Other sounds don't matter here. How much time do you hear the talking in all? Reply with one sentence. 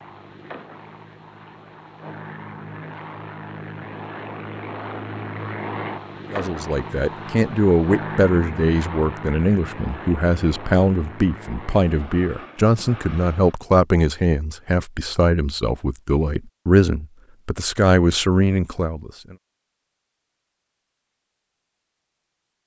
You can hear the talking for 13 seconds altogether.